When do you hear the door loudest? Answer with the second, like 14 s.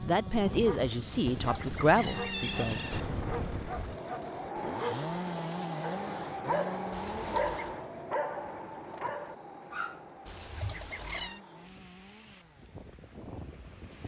3 s.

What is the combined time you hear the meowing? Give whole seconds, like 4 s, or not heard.
4 s.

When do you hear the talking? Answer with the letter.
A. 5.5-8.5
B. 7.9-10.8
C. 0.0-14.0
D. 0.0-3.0
D.